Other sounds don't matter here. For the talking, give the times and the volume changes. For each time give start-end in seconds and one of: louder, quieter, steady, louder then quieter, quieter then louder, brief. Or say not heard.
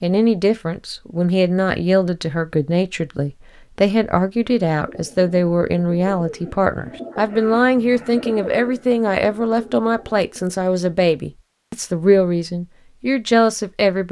0.0-14.0 steady.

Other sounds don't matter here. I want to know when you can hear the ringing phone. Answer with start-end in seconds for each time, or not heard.
not heard.